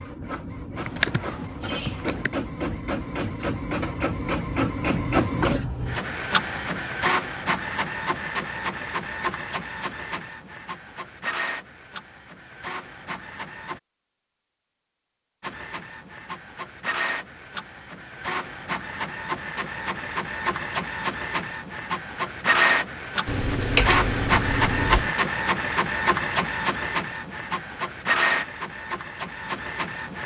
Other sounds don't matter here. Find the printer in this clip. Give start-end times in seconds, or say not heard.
0.0-13.8, 15.4-30.2.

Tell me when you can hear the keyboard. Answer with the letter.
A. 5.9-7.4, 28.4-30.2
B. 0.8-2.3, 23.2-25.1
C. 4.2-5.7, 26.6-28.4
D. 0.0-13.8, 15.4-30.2
B.